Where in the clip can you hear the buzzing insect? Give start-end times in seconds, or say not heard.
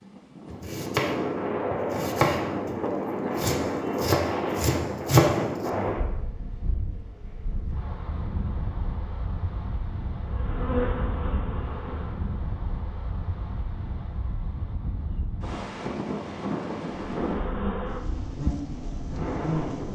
10.2-12.4, 16.9-19.9.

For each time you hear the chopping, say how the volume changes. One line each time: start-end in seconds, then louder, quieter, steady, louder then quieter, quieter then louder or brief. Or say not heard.
0.5-6.0 louder.